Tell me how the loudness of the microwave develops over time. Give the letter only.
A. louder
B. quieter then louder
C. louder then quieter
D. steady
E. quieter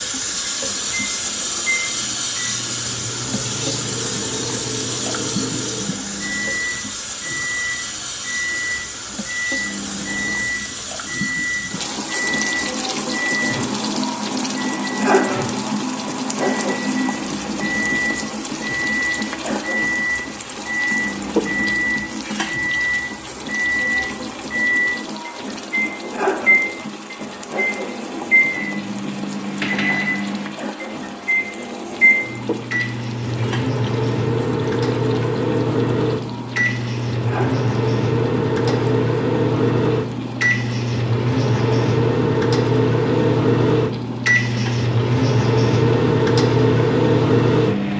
A.